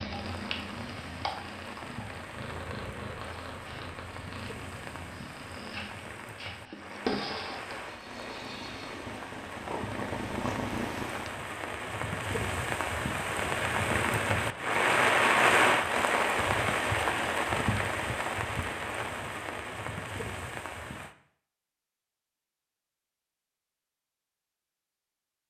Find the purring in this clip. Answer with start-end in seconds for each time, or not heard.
0.0-11.3.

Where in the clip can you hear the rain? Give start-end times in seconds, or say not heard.
0.0-21.1.